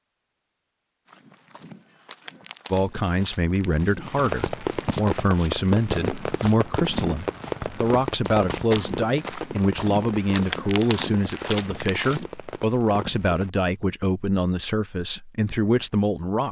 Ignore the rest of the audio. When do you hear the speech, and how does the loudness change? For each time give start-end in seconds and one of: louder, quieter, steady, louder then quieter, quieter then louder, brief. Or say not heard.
2.7-16.4 steady.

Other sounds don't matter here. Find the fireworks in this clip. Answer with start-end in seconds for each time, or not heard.
4.0-13.5.